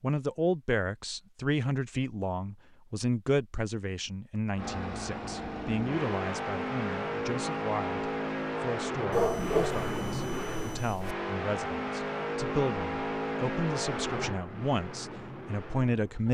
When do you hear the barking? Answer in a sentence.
The barking can be heard from 9.1 to 11.2 s.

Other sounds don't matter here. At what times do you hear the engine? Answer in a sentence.
You can hear the engine from 4.5 to 16.2 s.